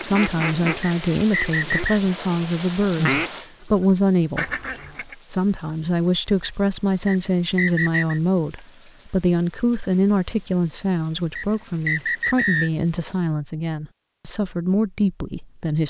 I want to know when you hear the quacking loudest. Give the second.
3 s.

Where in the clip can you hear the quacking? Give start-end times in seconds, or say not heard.
0.0-2.1, 2.8-5.2.